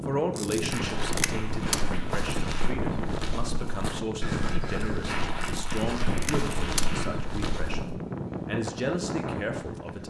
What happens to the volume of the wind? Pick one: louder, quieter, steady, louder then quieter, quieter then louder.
steady.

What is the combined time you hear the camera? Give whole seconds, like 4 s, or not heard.
3 s.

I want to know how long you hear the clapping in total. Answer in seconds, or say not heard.
4 s.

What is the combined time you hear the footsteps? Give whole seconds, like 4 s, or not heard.
7 s.